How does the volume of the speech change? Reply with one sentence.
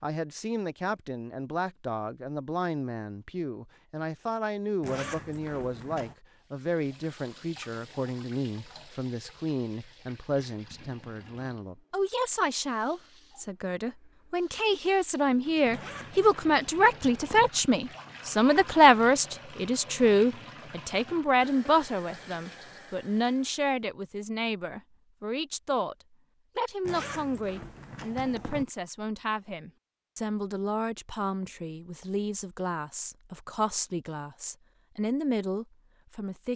The loudness of the speech goes up, then down.